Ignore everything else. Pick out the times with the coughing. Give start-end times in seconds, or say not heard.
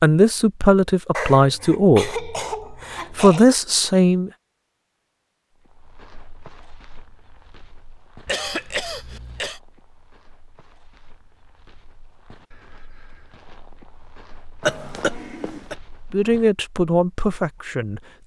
1.1-3.5, 8.2-9.6, 14.6-15.8.